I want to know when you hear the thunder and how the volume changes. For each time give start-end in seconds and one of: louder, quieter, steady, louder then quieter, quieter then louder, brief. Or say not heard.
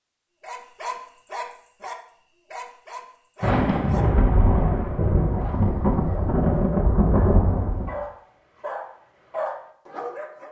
3.4-7.9 steady.